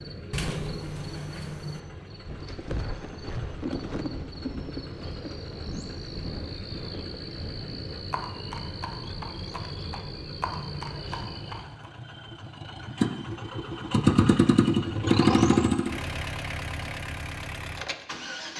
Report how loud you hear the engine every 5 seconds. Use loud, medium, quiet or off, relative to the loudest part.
quiet, quiet, loud, loud.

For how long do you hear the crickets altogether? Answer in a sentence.
You can hear the crickets for 12 seconds altogether.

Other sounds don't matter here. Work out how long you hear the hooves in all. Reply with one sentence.
The hooves can be heard for 10 seconds in total.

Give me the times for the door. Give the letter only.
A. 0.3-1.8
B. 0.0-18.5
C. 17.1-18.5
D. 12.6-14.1
A.